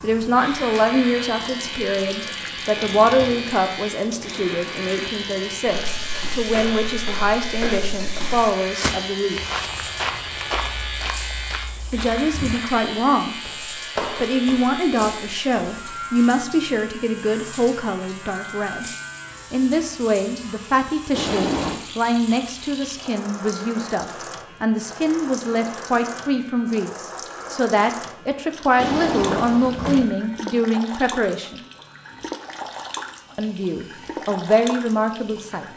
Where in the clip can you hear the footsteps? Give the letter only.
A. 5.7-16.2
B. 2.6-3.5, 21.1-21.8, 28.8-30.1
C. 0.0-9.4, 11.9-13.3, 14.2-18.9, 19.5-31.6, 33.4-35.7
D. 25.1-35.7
A.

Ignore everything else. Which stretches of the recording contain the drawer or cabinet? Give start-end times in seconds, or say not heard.
2.6-3.5, 21.1-21.8, 28.8-30.1.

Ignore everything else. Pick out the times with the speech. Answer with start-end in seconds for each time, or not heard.
0.0-9.4, 11.9-13.3, 14.2-18.9, 19.5-31.6, 33.4-35.7.